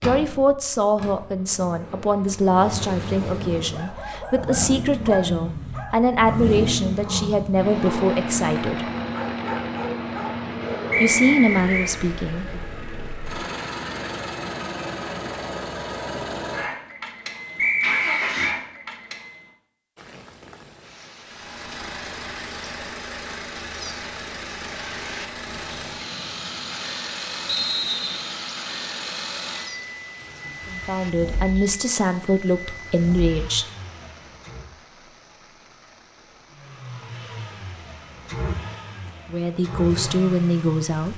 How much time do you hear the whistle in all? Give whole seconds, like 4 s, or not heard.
3 s.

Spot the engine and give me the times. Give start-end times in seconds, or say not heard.
0.0-19.5, 21.2-34.7, 36.5-41.1.